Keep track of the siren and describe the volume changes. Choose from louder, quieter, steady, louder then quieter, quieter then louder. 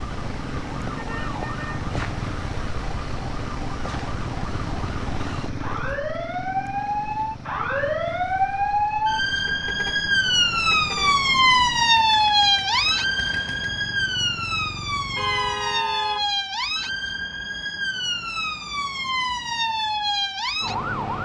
louder then quieter.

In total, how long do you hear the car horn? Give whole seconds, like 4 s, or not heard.
4 s.